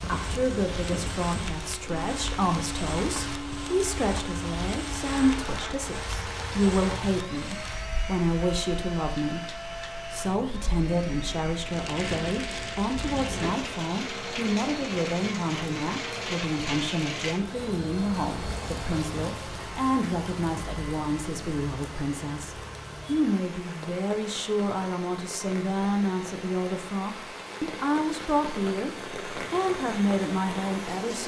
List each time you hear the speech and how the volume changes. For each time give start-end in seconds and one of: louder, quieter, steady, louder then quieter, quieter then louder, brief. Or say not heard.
0.1-31.2 steady.